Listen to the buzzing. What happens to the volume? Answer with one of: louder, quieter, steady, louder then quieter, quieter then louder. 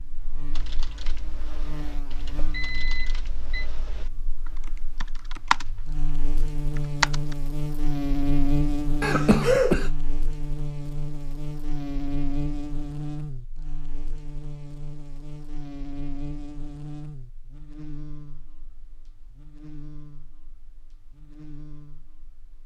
louder then quieter.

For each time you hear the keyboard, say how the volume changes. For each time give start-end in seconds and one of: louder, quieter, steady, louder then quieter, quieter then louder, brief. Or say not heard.
0.5-5.7 steady
6.8-7.3 brief.